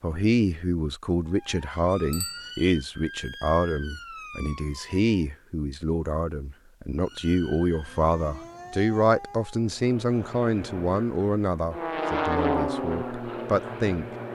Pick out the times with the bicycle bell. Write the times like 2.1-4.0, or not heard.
2.1-2.6.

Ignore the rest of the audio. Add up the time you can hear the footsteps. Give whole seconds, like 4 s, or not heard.
not heard.